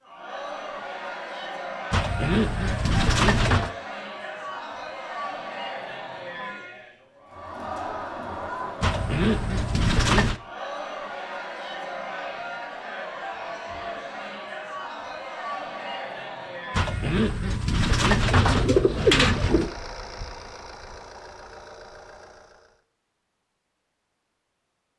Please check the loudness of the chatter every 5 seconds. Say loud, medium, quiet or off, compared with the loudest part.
loud, loud, loud, loud, off.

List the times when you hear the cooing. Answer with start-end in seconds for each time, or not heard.
1.9-3.7, 8.8-10.4, 16.7-19.7.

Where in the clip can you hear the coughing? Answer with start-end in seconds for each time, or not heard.
not heard.